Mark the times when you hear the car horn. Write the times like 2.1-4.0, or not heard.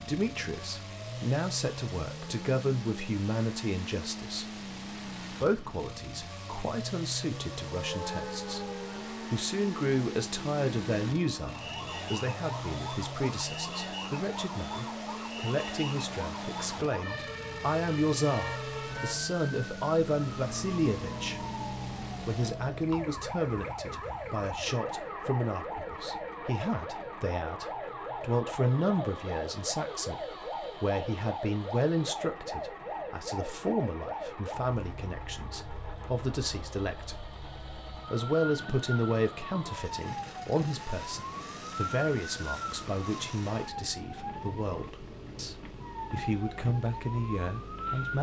18.3-19.2.